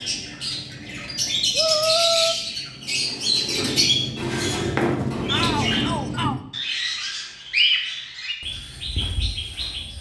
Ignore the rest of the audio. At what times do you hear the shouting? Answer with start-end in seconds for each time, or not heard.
1.6-2.4, 5.2-6.4.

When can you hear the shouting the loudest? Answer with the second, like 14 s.
2 s.